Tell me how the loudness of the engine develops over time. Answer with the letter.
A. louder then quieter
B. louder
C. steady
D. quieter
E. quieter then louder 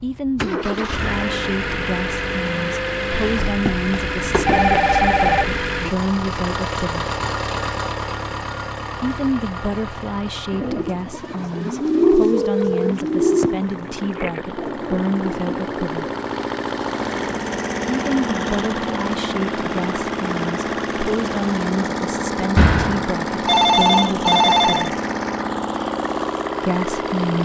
E.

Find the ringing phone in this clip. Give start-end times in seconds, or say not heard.
3.1-5.6, 12.3-14.4, 22.6-24.9.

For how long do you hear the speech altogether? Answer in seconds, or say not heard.
22 s.